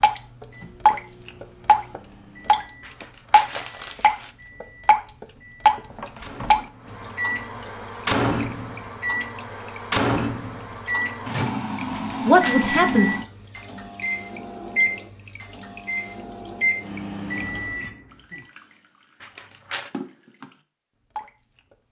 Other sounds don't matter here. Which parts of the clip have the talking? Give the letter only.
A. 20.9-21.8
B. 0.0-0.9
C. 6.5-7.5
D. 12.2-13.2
D.